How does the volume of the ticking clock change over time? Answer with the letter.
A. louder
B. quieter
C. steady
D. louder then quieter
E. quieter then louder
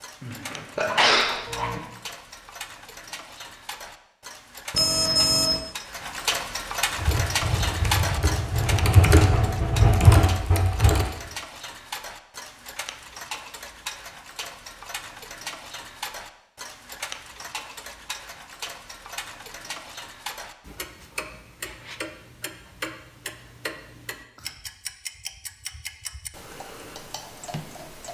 D.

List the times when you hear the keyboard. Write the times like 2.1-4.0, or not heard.
7.0-11.1.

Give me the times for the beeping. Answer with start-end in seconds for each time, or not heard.
4.7-5.6.